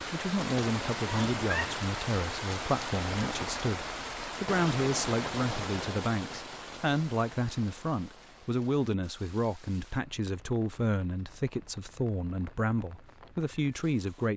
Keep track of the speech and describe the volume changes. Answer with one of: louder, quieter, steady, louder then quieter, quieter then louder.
steady.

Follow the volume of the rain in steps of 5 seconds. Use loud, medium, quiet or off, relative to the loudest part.
loud, medium, quiet.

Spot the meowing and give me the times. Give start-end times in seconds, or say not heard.
1.1-1.8.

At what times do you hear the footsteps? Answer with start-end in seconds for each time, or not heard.
not heard.